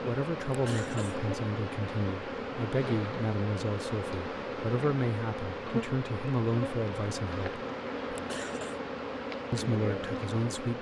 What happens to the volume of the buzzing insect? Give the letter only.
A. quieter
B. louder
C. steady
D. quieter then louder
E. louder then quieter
C.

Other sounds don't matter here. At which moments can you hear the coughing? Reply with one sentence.
You can hear the coughing from 0.5 to 1.2 s and from 8.1 to 8.8 s.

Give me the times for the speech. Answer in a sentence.
You can hear the speech from 0.0 to 7.7 s and from 9.5 to 10.7 s.